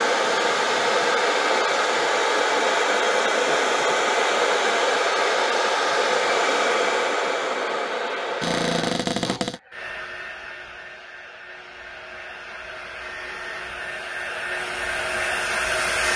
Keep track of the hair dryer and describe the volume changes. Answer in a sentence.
The volume of the hair dryer goes down, then up.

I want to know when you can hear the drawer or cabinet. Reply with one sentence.
The drawer or cabinet can be heard from 8.4 to 9.6 s.